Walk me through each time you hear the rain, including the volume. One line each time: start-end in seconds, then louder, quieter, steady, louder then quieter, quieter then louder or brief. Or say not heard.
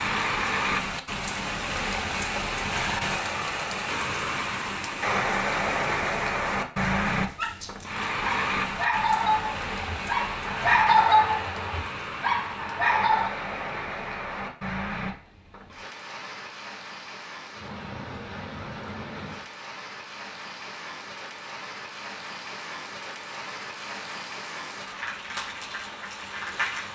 0.0-26.9 quieter.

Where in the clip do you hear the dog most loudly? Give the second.
11 s.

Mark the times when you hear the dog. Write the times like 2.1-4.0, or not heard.
7.2-13.3.